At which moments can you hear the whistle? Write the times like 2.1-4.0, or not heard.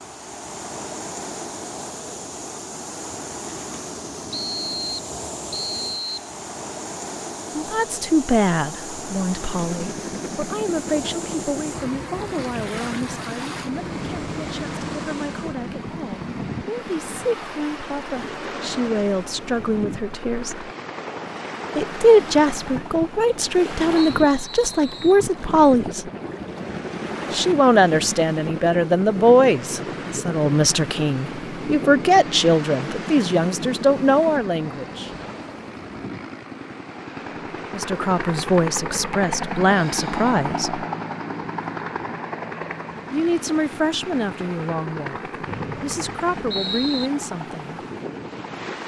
4.3-6.3, 23.9-25.2, 45.5-47.1.